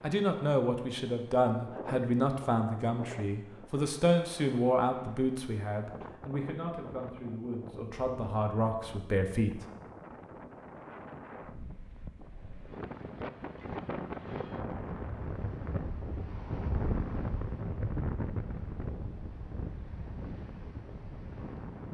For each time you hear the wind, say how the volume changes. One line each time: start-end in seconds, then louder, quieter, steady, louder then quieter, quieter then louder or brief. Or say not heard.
0.0-21.8 louder.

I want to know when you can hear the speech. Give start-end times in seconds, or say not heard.
0.0-9.6.